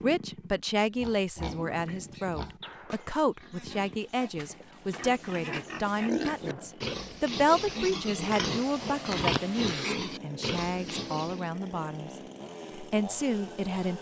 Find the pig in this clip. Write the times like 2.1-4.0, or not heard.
0.9-11.5.